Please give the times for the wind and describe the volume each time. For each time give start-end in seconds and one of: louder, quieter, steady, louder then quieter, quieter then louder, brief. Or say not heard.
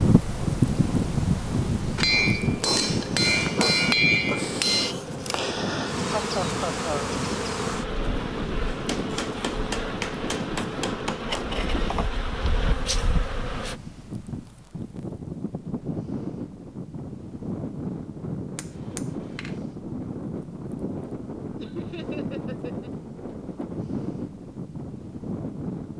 0.0-25.9 quieter.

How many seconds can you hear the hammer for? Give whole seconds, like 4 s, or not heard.
7 s.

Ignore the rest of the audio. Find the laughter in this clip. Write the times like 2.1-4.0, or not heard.
6.0-7.2, 21.6-22.9.